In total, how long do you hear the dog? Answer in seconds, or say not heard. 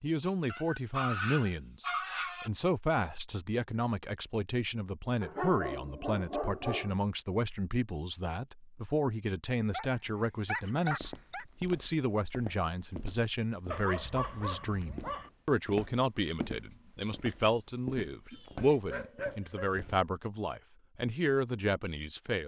9 s.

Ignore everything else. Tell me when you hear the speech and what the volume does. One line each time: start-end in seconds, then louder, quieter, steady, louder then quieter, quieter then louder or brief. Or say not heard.
0.0-22.4 steady.